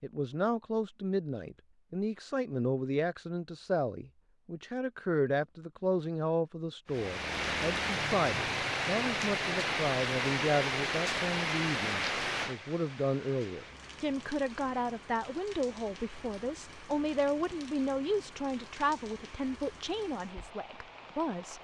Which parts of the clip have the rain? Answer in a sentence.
The rain can be heard from 6.9 to 21.6 s.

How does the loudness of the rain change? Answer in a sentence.
The volume of the rain goes down.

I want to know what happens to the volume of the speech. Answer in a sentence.
The loudness of the speech stays about the same.